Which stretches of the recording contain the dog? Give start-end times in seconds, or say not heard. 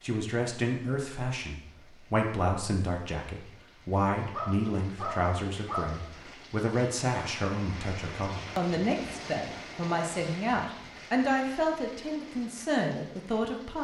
4.3-6.3.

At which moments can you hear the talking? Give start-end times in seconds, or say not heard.
0.0-13.7.